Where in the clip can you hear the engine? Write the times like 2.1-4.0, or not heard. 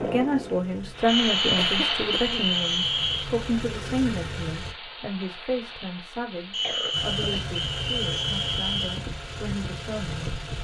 0.0-4.8, 6.9-10.5.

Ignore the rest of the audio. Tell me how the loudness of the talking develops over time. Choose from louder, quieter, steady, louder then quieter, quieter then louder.
quieter.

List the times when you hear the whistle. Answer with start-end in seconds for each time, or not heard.
1.1-3.2, 6.5-9.0.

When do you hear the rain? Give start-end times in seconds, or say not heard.
0.0-10.5.